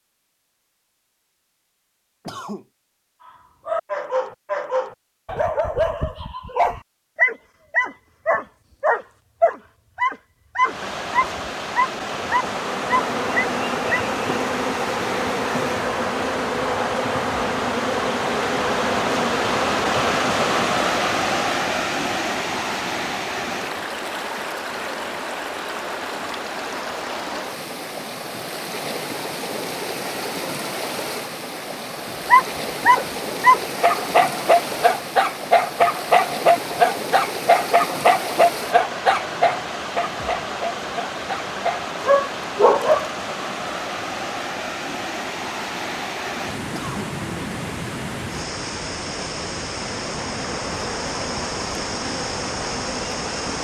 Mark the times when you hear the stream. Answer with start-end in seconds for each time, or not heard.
10.6-53.5.